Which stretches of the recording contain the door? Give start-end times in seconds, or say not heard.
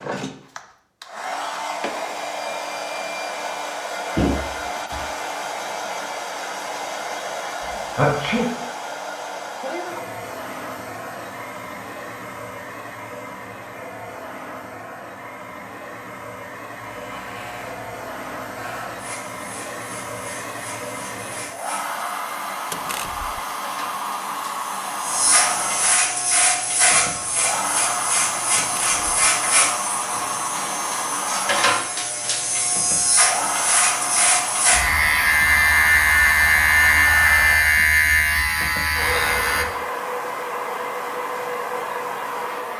4.2-5.2, 22.7-23.4, 28.6-29.0.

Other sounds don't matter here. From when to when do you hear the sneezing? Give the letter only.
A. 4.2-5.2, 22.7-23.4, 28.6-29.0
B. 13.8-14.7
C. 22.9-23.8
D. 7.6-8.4
D.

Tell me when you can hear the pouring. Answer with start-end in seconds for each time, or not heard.
not heard.